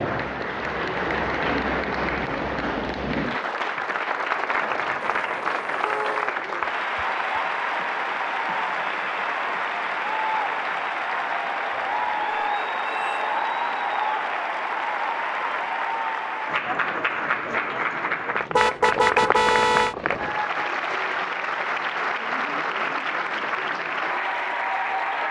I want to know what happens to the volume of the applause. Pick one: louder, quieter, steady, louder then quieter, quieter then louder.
steady.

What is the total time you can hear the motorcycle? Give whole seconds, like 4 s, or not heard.
not heard.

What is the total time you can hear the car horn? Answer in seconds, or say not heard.
4 s.